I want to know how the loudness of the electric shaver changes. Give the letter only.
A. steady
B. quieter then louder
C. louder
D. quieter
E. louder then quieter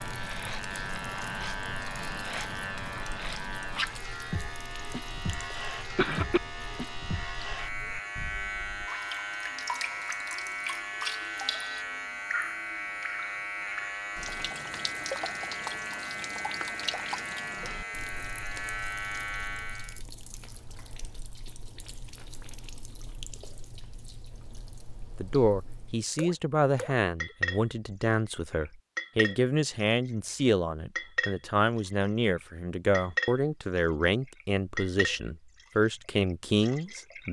A.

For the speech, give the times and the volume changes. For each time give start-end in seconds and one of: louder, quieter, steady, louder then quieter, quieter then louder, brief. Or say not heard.
25.1-37.2 steady.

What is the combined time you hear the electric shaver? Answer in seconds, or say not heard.
20 s.